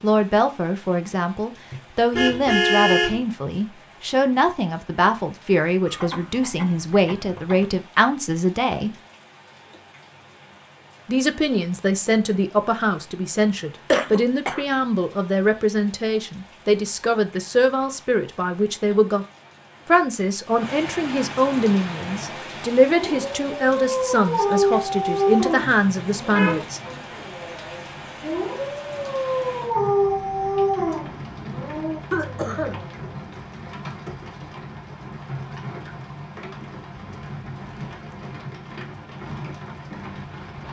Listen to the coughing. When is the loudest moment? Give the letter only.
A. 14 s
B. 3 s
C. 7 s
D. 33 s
A.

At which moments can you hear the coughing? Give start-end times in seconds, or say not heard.
5.8-7.8, 13.9-14.7, 32.1-32.9.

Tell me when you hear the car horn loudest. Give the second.
3 s.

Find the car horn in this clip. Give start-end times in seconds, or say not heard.
1.7-3.2, 25.6-27.0.